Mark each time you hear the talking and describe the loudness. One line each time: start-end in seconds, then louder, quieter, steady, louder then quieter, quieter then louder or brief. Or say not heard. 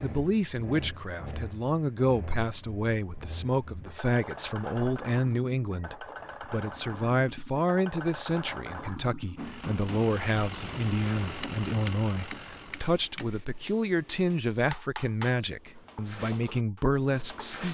0.0-17.7 steady.